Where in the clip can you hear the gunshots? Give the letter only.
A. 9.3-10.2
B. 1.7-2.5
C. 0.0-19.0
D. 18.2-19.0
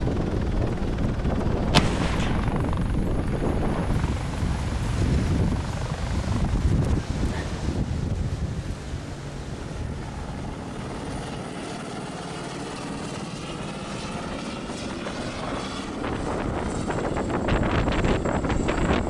B.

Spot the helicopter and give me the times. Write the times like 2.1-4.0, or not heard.
0.0-19.0.